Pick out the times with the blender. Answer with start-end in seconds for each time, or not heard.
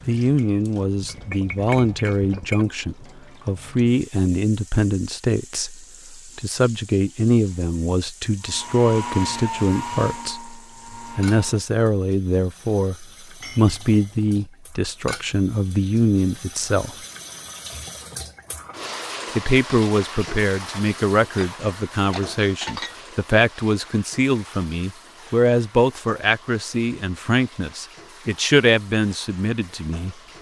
8.4-11.7.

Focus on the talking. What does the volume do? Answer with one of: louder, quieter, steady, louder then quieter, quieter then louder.
steady.